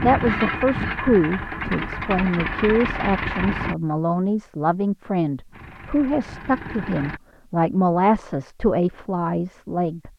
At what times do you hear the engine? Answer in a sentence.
You can hear the engine from 0.0 to 3.8 s and from 5.5 to 7.2 s.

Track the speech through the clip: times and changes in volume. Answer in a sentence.
The speech can be heard from 0.0 to 10.1 s, at a steady volume.